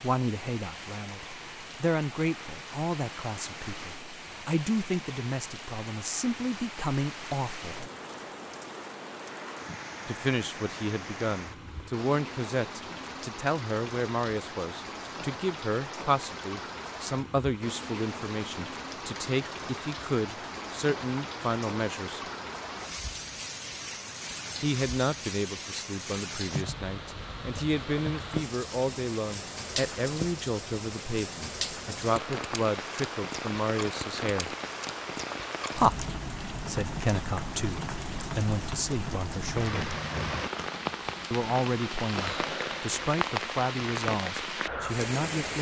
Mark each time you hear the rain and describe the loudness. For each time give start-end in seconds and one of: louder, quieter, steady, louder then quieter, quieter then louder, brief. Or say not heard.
0.0-45.5 louder.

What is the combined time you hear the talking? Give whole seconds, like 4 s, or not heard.
38 s.